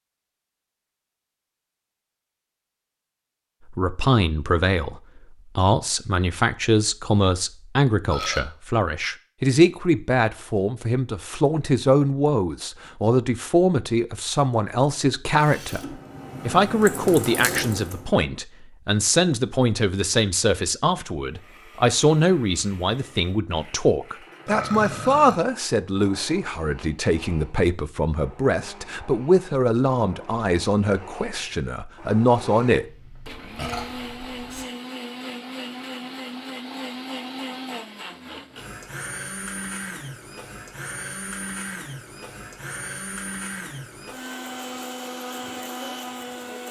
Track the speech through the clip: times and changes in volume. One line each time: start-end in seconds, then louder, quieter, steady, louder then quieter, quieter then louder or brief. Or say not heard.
3.7-32.9 steady.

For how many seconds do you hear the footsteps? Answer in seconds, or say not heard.
not heard.